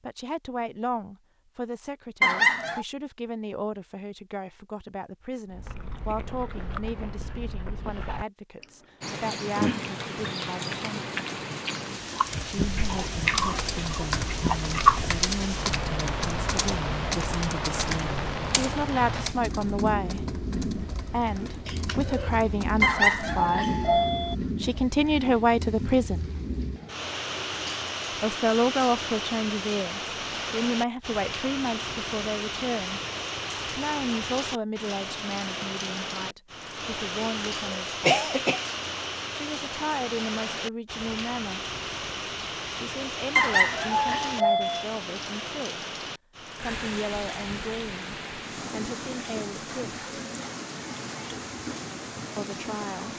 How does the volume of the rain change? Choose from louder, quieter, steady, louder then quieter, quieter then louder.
steady.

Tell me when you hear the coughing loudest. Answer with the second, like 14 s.
38 s.